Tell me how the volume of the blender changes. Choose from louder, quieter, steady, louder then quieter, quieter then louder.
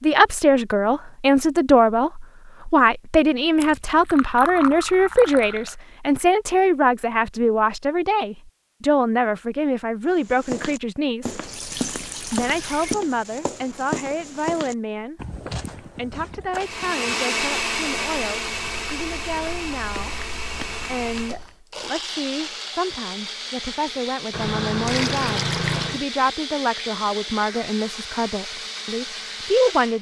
quieter.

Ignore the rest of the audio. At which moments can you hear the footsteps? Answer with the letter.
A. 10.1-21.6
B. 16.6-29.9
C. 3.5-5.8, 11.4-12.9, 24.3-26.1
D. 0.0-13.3
A.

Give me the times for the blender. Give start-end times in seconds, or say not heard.
16.6-29.9.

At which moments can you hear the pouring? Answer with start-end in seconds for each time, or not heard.
3.5-5.8, 11.4-12.9, 24.3-26.1.